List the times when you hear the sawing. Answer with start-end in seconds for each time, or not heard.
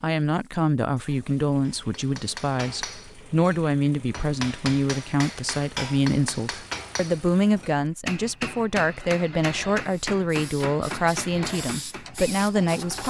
not heard.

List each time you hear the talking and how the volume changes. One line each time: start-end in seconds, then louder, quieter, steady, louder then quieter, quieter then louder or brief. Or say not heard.
0.0-13.0 steady.